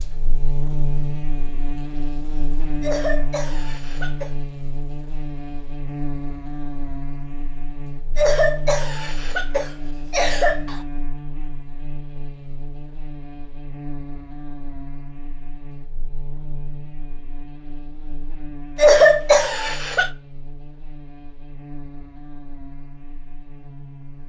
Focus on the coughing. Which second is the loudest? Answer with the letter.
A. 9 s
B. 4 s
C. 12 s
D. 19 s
D.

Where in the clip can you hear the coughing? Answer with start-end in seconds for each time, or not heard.
2.8-4.3, 8.2-10.8, 18.8-20.1.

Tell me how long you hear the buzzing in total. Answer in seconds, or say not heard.
24 s.